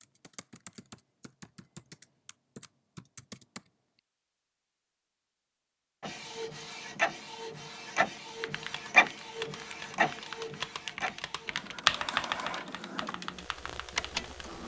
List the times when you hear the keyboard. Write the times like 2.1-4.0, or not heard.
0.0-3.7, 8.2-14.4.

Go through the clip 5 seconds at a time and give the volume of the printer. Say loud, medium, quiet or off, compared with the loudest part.
off, loud, medium.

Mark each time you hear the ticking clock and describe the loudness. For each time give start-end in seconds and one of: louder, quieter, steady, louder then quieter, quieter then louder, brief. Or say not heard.
not heard.